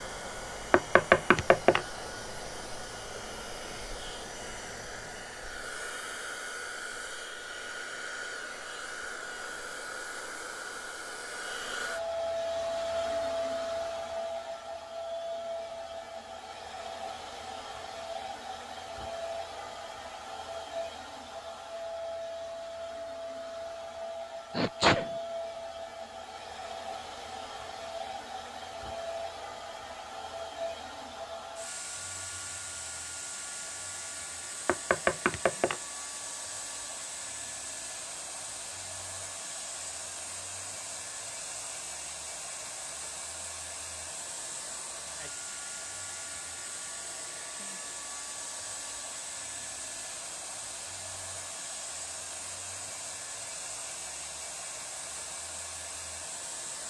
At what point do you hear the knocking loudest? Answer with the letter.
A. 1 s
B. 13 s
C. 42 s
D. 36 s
A.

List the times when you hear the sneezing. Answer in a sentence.
The sneezing can be heard from 24.6 to 25.1 s.